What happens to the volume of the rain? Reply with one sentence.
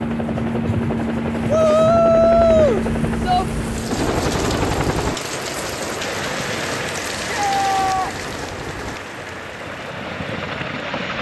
The loudness of the rain goes up, then down.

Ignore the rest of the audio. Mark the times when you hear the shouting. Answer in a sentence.
You can hear the shouting from 1.4 to 3.5 s and from 7.2 to 8.2 s.